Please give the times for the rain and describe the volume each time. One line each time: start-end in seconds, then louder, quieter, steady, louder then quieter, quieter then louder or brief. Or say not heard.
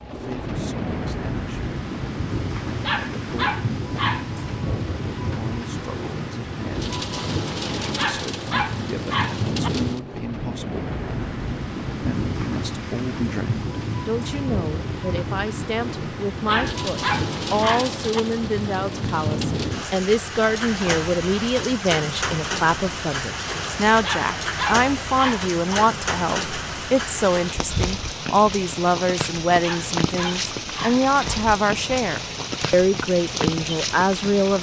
0.0-34.5 steady.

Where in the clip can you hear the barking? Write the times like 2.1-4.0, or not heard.
2.8-4.2, 7.8-9.7, 16.4-18.2, 23.9-25.8, 29.6-31.4.